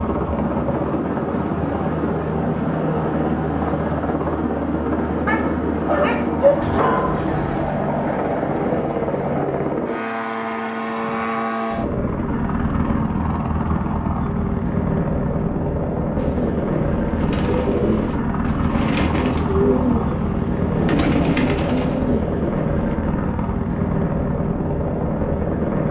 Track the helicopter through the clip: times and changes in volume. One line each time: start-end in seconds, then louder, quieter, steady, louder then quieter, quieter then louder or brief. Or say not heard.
0.0-25.8 steady.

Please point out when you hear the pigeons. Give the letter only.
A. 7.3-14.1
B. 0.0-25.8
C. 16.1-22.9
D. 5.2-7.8
C.